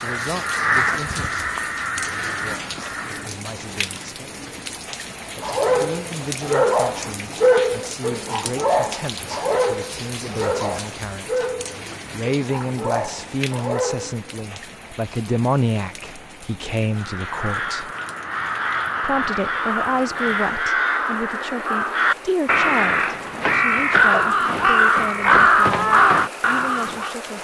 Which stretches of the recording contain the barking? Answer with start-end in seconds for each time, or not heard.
5.3-14.2.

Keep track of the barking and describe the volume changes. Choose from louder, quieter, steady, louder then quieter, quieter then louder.
quieter.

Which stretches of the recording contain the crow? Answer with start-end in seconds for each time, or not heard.
0.0-3.4, 16.9-27.1.